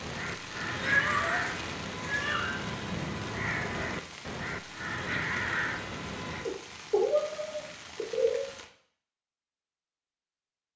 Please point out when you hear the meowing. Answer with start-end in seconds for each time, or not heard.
0.7-2.4, 6.5-8.4.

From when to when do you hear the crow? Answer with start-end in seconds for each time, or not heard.
0.0-6.5.